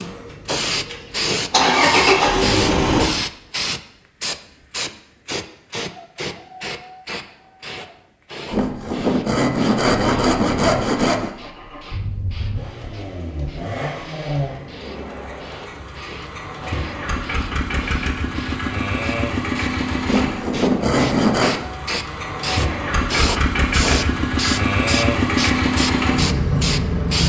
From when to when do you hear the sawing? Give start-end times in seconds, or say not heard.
8.5-11.3, 20.1-21.6.